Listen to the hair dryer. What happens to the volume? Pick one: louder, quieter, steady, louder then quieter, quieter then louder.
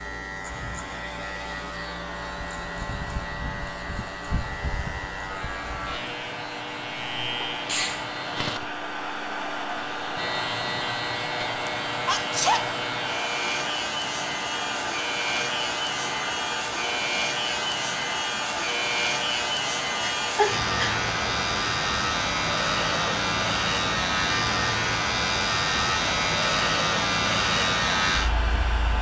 louder.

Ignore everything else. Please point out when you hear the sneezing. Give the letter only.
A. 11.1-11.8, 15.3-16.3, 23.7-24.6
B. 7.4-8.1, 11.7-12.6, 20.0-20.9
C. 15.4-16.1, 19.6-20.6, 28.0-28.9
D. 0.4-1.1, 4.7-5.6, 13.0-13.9
B.